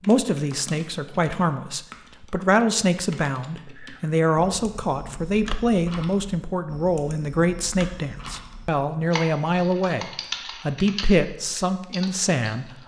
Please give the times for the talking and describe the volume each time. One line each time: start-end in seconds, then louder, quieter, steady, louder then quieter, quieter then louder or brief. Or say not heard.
0.1-12.7 steady.